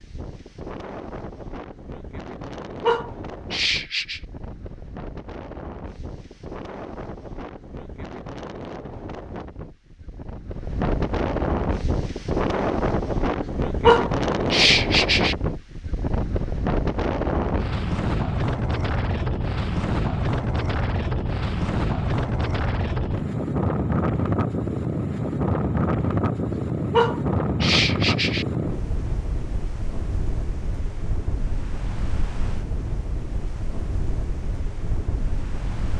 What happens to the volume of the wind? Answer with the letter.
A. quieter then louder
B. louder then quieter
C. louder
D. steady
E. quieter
B.